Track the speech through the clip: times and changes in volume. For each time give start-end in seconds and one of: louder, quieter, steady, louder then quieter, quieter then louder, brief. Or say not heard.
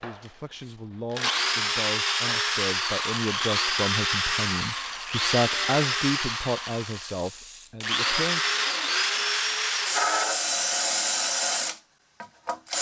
0.0-8.5 louder then quieter.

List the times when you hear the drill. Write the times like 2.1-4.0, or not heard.
0.0-12.7.